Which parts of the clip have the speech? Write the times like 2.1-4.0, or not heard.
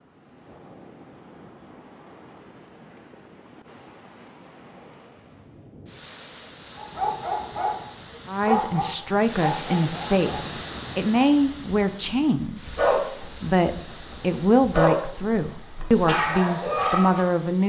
8.2-17.6.